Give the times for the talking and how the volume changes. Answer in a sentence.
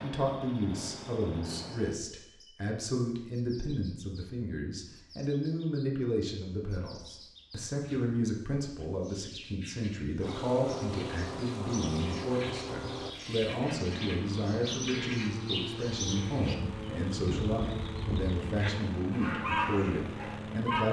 The talking can be heard from 0.0 to 20.8 s, at a steady volume.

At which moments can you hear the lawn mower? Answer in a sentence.
The lawn mower can be heard from 0.0 to 2.0 s and from 10.2 to 20.8 s.